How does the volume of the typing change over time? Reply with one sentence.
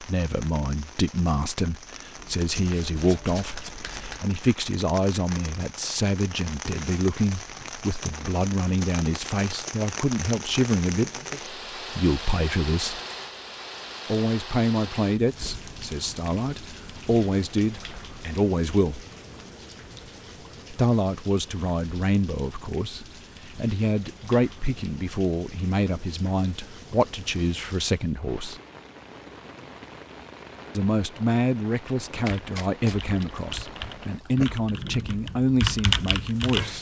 The volume of the typing goes up.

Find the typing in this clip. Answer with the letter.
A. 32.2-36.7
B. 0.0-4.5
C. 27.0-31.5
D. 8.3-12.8
A.